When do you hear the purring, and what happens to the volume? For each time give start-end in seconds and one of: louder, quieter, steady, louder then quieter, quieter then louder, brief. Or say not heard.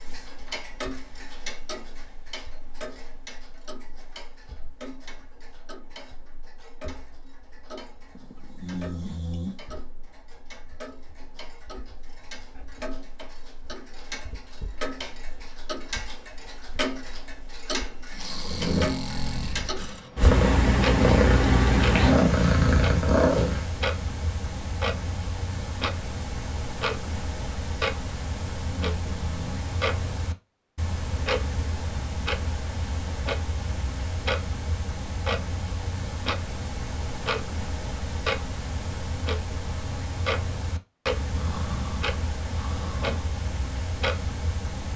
18.4-23.7 louder.